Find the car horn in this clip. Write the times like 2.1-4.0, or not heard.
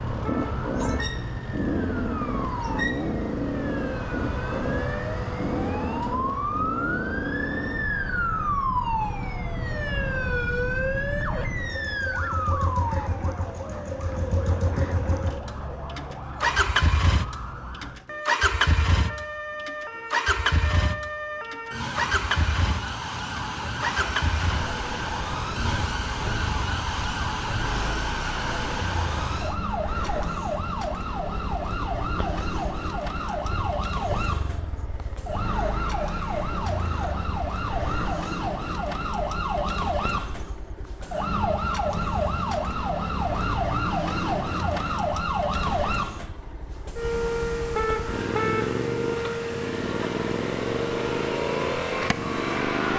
0.2-1.1, 47.7-48.8.